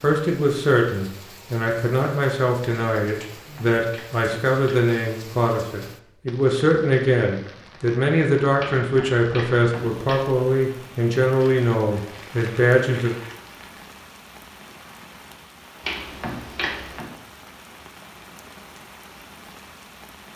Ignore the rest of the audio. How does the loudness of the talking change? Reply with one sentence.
The volume of the talking stays about the same.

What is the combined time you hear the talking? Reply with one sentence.
The talking can be heard for 13 seconds in total.